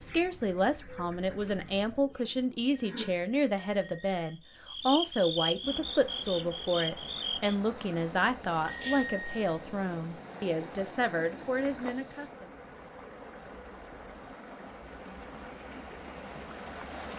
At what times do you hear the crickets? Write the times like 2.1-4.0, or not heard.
0.0-12.3.